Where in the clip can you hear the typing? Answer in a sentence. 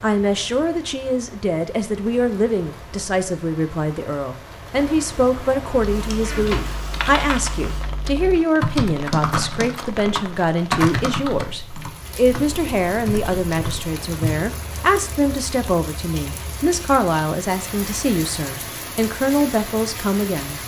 You can hear the typing from 5.8 to 14.3 s.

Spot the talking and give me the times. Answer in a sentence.
You can hear the talking from 0.0 to 20.6 s.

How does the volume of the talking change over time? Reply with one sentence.
The volume of the talking stays about the same.